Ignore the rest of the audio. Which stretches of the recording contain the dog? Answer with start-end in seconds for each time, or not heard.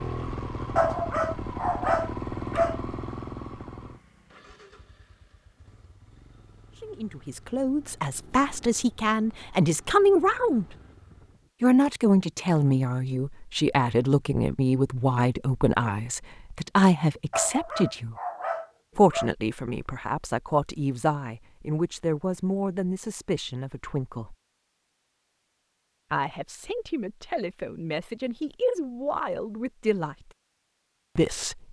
0.8-2.8, 17.3-19.4.